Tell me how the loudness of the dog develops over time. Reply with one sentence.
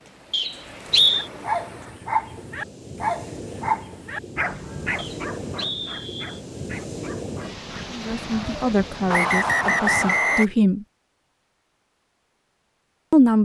The loudness of the dog goes down.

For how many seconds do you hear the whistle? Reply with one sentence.
You can hear the whistle for 4 seconds altogether.